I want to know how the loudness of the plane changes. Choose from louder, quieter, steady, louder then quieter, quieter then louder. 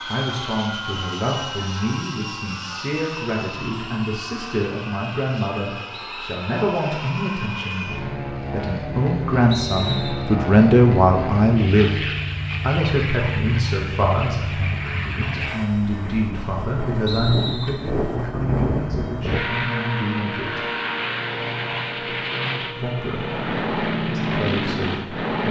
louder.